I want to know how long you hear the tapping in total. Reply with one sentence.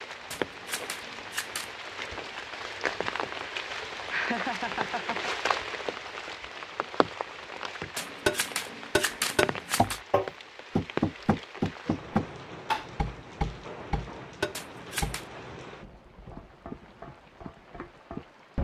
The tapping can be heard for 7 seconds in total.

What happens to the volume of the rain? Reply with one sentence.
The loudness of the rain goes down.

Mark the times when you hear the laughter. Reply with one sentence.
You can hear the laughter from 4.1 to 5.3 s.